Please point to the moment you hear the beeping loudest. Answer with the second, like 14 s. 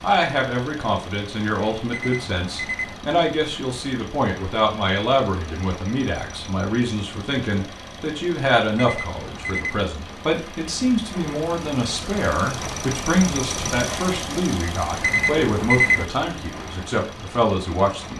16 s.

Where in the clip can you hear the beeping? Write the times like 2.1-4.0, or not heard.
1.9-3.0, 8.8-9.8, 15.0-16.1.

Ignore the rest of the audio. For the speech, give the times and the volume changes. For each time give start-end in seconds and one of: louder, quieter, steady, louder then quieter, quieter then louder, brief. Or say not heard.
0.0-18.1 steady.